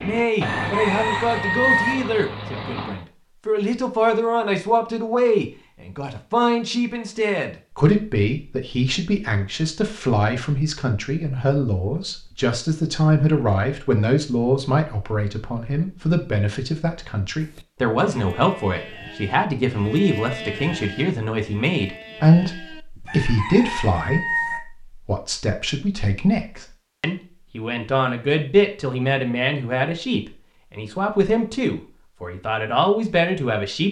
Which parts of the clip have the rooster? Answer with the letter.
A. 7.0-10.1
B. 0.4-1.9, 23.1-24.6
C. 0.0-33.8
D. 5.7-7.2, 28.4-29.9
B.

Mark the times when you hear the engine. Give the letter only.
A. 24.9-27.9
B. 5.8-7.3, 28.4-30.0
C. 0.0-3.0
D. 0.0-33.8
C.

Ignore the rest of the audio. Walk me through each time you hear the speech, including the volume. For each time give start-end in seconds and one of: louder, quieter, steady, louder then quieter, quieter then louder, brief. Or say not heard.
0.0-33.8 steady.